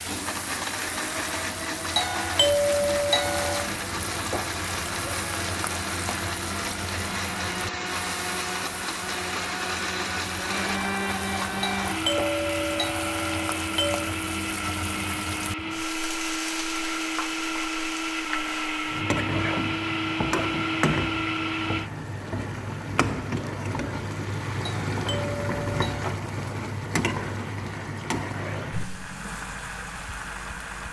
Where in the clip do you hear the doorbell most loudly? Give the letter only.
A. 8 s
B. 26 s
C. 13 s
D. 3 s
D.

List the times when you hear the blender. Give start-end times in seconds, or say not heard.
0.0-21.9.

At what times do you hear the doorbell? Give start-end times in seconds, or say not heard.
1.9-3.7, 11.8-14.1, 24.6-26.1.